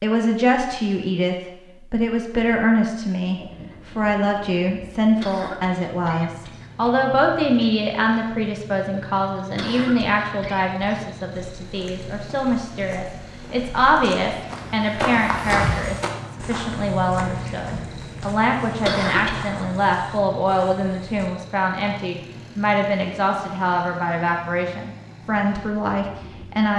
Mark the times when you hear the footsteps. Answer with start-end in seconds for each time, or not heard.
11.3-21.3.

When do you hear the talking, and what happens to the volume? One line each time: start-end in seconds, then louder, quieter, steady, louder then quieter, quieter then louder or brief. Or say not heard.
0.0-26.7 steady.